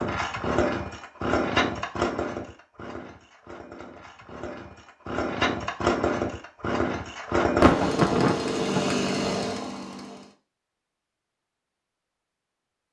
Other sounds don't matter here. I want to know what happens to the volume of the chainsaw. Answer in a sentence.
The volume of the chainsaw goes down, then up.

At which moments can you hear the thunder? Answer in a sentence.
You can hear the thunder from 7.6 to 8.9 s.